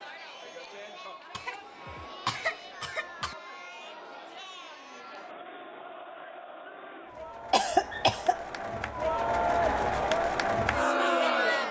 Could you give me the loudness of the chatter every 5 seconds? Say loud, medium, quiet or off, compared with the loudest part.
quiet, medium, loud.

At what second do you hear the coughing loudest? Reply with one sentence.
The volume of the coughing peaks at 8 seconds.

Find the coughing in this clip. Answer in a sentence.
You can hear the coughing from 1.3 to 3.4 s and from 7.5 to 8.3 s.